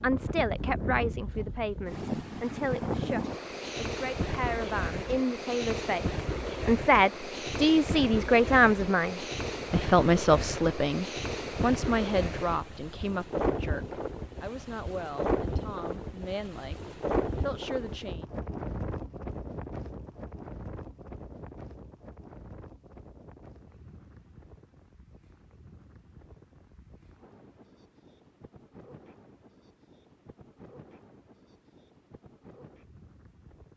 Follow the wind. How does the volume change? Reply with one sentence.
The volume of the wind goes down.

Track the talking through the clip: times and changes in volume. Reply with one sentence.
The talking can be heard from 0.0 to 18.2 s, getting louder then quieter.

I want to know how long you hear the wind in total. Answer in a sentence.
You can hear the wind for 34 seconds altogether.